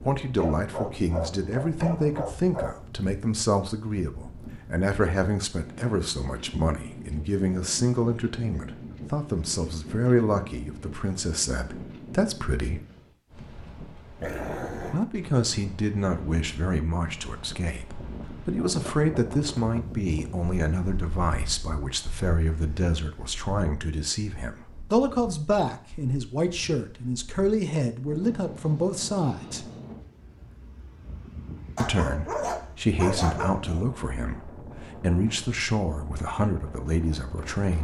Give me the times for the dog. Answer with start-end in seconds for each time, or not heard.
0.3-2.8, 14.2-15.0, 31.8-33.9.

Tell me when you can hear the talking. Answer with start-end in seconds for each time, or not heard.
0.0-12.8, 14.9-29.7, 31.8-37.7.